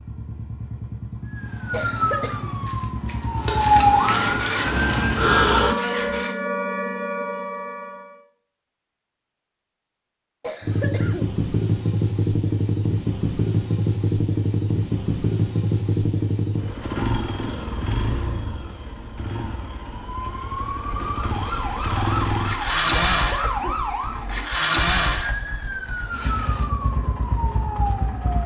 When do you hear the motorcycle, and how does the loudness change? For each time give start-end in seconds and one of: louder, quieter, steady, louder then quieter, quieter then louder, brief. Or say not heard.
0.0-6.3 louder
10.6-28.4 quieter then louder.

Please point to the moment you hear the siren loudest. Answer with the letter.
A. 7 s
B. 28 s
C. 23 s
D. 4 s
D.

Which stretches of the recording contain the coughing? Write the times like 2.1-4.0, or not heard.
1.7-2.5, 10.4-11.3, 23.1-23.8.